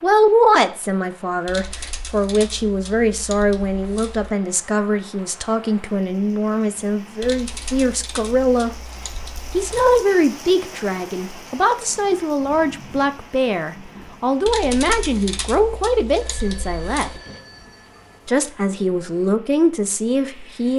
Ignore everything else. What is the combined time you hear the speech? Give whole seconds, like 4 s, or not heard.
19 s.